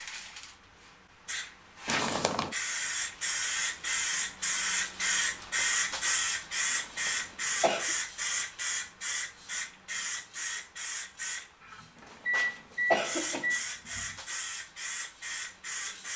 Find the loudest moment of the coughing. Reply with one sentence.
The loudest moment of the coughing is at 13 seconds.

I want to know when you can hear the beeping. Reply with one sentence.
The beeping can be heard from 11.6 to 14.2 s.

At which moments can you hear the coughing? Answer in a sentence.
You can hear the coughing from 1.9 to 2.5 s, from 6.7 to 8.0 s and from 11.9 to 13.6 s.